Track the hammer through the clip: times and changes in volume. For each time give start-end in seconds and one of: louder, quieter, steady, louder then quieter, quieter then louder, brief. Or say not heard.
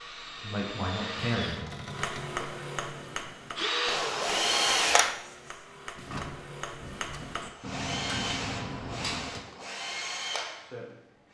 1.8-9.4 quieter then louder.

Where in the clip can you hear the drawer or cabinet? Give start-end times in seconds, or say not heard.
1.4-2.4, 6.0-7.5.